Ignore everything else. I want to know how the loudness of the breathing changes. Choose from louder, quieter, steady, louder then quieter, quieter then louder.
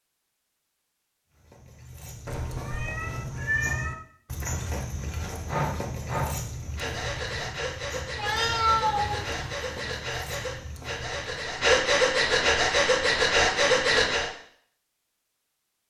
louder.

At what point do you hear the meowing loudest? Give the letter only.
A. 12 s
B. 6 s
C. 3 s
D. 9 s
D.